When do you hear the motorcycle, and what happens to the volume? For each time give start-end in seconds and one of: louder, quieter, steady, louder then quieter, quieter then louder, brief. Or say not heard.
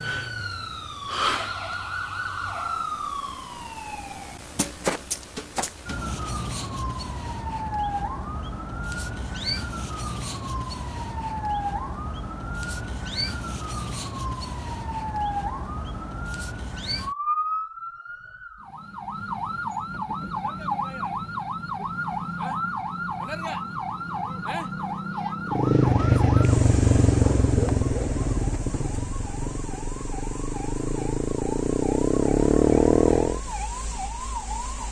25.4-33.4 quieter then louder.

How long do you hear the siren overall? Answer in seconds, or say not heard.
35 s.